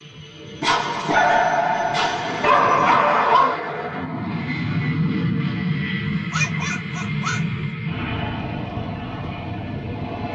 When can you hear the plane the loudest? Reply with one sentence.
The volume of the plane peaks at 5 seconds.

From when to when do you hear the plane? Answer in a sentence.
The plane can be heard from 0.0 to 10.3 s.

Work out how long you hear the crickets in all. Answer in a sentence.
You can't hear the crickets here.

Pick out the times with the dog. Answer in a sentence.
The dog can be heard from 0.6 to 3.6 s and from 6.1 to 7.7 s.